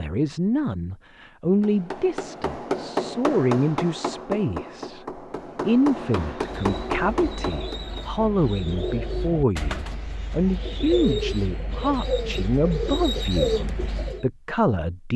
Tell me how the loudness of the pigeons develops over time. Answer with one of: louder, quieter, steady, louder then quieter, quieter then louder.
louder.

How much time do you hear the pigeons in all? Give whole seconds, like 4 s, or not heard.
8 s.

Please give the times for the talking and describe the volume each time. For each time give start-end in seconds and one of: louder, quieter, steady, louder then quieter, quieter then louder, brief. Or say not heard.
0.0-15.1 steady.